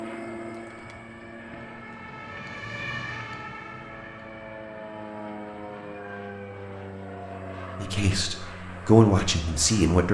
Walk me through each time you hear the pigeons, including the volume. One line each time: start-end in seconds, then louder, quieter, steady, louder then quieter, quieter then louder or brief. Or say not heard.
not heard.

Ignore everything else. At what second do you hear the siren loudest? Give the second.
3 s.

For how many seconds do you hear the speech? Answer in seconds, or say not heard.
2 s.